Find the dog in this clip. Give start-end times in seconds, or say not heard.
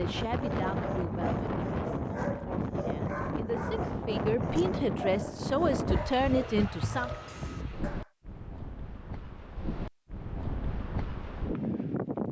0.2-8.1.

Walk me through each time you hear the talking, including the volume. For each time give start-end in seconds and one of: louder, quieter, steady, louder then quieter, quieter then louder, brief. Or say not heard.
0.0-7.1 quieter then louder.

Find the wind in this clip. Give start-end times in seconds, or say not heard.
0.0-12.2.